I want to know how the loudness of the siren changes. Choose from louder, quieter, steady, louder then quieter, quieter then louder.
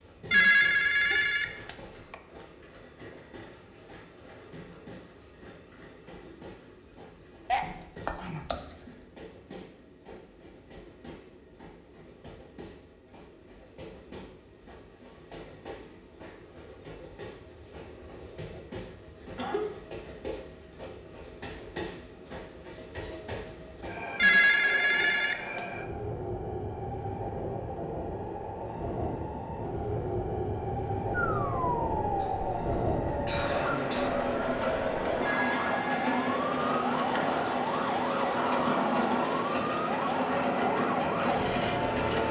steady.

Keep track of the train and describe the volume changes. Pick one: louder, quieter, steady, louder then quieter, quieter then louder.
louder.